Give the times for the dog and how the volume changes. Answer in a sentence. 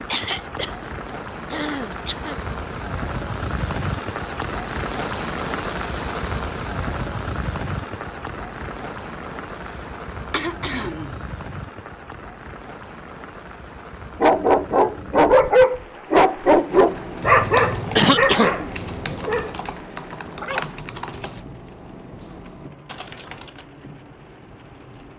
You can hear the dog from 14.2 to 20.8 s, getting quieter.